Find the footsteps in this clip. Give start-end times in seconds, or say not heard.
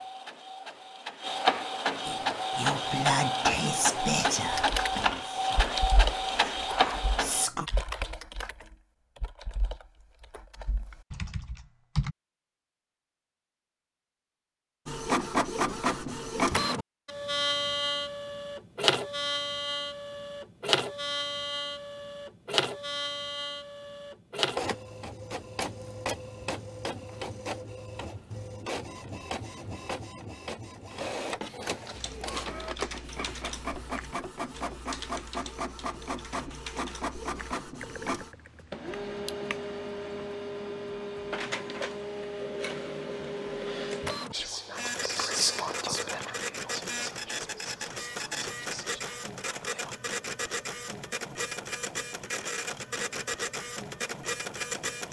not heard.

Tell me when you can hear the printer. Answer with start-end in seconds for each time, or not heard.
0.0-7.5, 14.8-55.0.